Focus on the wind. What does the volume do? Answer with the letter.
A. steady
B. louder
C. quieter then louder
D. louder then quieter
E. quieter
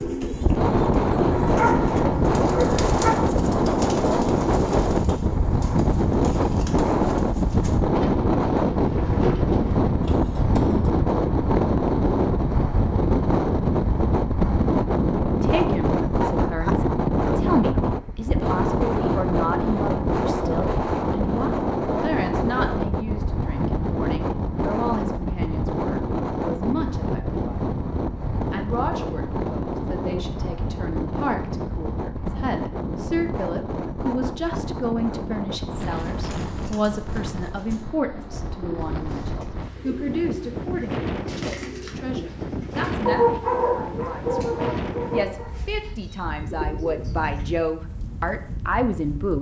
E.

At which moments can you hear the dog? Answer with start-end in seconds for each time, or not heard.
1.3-3.2, 43.0-45.5.